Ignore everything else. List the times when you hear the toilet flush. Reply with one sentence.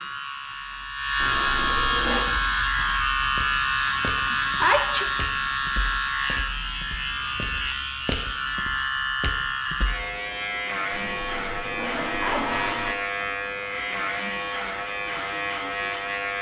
The toilet flush can be heard from 1.1 to 2.2 s and from 10.9 to 12.9 s.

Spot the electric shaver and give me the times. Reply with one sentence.
The electric shaver can be heard from 0.0 to 16.3 s.